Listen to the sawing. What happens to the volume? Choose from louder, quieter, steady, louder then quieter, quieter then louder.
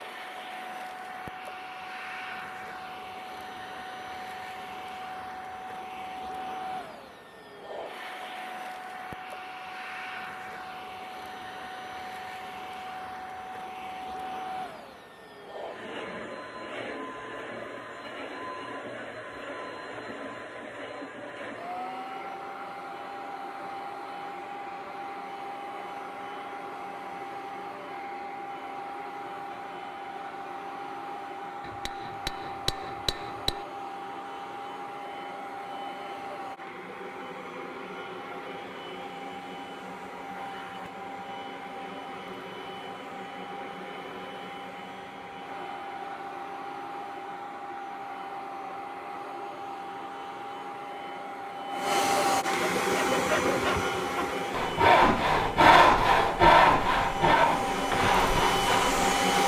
louder then quieter.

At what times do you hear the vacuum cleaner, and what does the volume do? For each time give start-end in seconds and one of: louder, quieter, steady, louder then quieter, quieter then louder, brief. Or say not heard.
0.0-59.4 louder.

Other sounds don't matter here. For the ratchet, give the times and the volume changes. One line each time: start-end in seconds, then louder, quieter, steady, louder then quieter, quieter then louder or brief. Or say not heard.
not heard.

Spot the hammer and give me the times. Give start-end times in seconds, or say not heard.
31.6-33.6.